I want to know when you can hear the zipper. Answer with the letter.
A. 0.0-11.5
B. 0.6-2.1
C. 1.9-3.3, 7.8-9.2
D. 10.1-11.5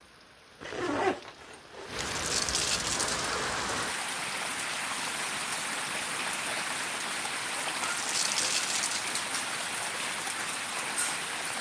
B.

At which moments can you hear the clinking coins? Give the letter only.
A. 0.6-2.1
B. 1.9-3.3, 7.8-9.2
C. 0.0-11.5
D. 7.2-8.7
B.